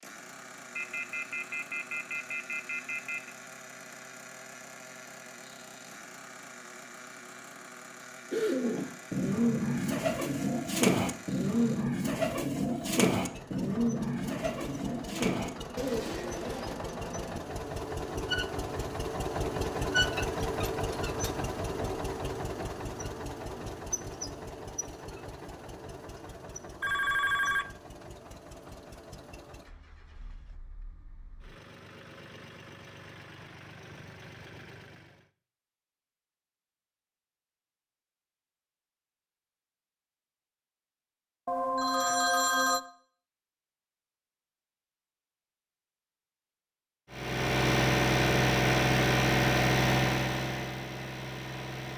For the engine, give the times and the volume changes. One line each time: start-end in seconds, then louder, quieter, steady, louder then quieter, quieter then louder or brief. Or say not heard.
0.0-35.3 louder then quieter
47.1-51.9 quieter.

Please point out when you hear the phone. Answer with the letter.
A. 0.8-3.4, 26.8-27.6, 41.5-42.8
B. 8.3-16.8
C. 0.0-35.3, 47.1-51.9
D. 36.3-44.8
A.